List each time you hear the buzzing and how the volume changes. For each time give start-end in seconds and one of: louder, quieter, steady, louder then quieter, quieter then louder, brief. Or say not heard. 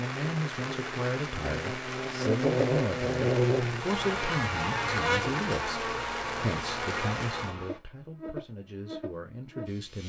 0.1-10.0 louder then quieter.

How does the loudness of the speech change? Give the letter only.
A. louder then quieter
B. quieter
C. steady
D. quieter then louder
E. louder
B.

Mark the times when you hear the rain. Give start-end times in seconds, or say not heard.
0.0-7.5.